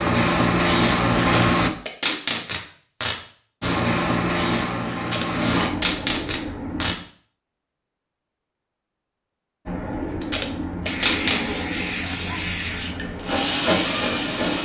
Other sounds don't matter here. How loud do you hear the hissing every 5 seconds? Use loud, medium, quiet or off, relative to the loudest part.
loud, medium, medium.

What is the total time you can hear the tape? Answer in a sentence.
The tape can be heard for 5 seconds in total.